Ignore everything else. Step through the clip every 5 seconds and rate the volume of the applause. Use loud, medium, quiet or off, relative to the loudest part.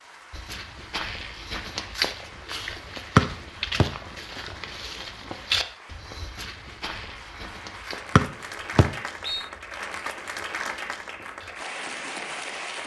quiet, medium, loud.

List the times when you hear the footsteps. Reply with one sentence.
You can hear the footsteps from 0.3 to 11.6 s.